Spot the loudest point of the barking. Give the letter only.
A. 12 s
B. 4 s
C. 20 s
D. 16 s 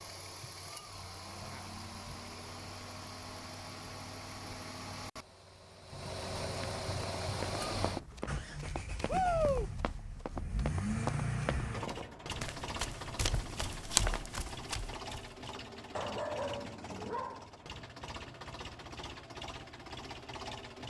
D.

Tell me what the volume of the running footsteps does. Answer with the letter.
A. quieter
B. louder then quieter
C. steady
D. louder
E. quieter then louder
D.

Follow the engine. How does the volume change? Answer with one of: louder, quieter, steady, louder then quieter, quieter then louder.
louder then quieter.